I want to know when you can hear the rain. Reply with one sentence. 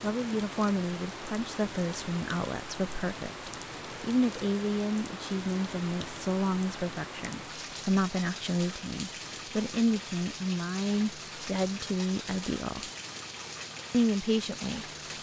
You can hear the rain from 0.0 to 15.1 s.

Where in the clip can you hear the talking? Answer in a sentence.
You can hear the talking from 0.0 to 12.9 s and from 13.9 to 15.1 s.